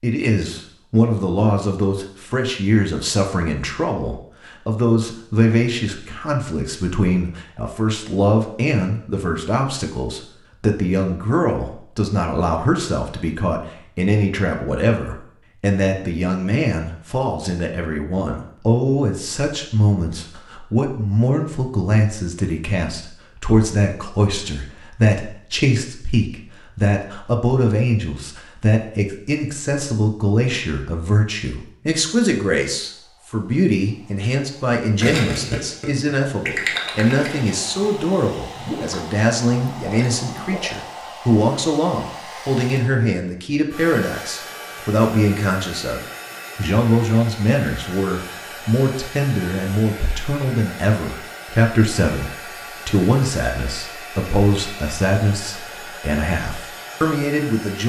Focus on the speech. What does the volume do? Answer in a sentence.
The volume of the speech stays about the same.